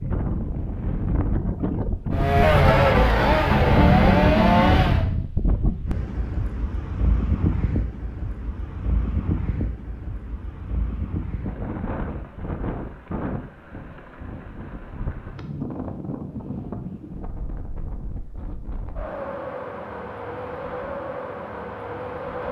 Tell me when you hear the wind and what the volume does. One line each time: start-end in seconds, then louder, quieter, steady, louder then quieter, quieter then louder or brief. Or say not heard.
0.0-22.4 quieter.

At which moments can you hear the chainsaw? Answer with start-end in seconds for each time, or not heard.
2.1-5.0.